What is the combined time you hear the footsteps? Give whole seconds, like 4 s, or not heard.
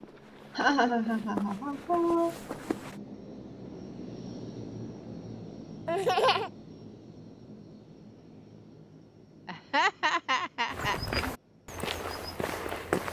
5 s.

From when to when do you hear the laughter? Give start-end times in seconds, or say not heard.
0.6-2.4, 5.8-6.5, 9.4-11.0.